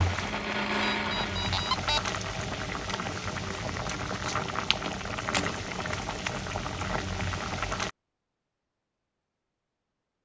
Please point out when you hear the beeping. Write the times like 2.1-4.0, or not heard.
0.9-2.0.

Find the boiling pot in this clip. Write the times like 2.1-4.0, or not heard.
0.0-7.9.